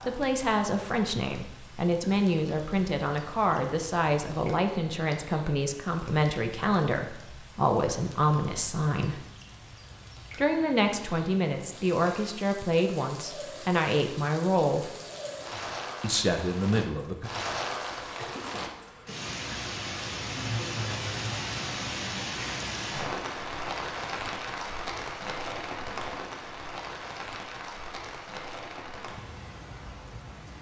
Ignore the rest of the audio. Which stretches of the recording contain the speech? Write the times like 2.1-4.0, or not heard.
0.0-9.2, 10.3-14.9, 16.0-17.3.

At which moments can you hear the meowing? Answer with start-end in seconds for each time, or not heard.
not heard.